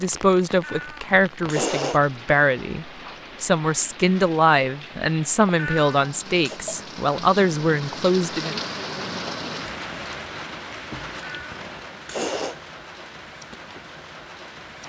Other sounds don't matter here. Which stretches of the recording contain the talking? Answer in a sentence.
The talking can be heard from 0.0 to 8.6 s.